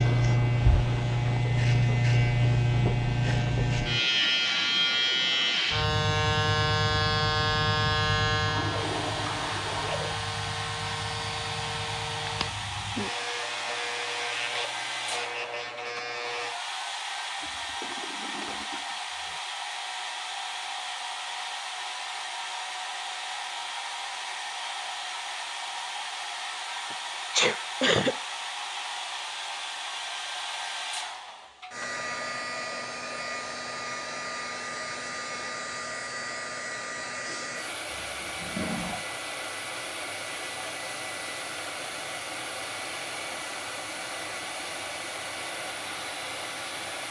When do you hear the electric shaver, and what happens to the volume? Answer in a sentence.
You can hear the electric shaver from 0.0 to 16.6 s, getting quieter.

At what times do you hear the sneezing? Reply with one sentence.
The sneezing can be heard from 26.9 to 28.1 s.